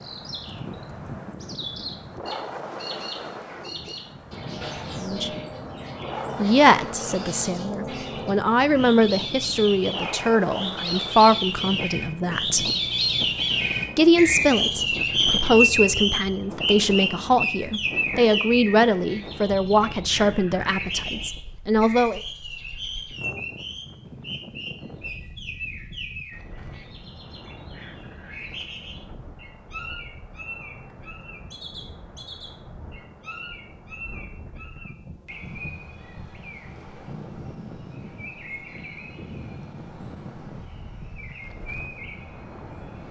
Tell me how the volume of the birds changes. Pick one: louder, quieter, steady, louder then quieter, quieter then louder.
louder then quieter.